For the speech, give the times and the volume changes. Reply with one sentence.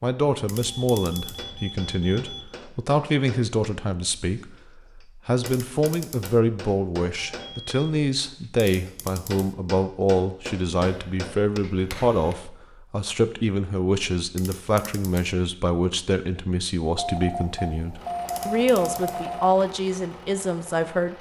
The speech can be heard from 0.0 to 21.1 s, at a steady volume.